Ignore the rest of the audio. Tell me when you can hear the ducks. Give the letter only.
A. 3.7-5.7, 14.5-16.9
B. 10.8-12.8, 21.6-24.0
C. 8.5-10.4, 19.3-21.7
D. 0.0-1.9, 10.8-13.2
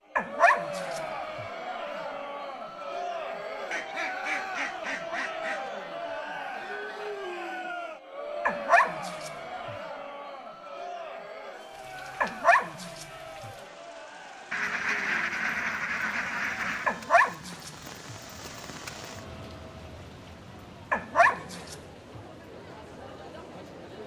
A.